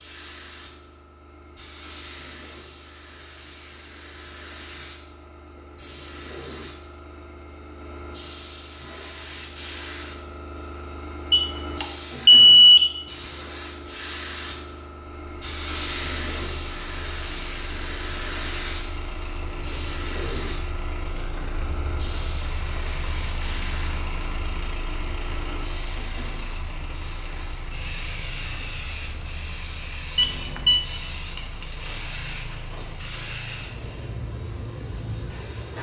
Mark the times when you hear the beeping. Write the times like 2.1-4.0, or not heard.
11.3-13.0, 30.1-30.8.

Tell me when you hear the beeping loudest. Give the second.
13 s.